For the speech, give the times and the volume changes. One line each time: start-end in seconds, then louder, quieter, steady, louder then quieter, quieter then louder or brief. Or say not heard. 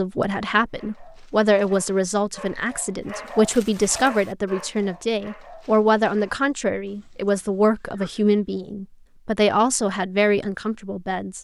0.0-11.3 steady.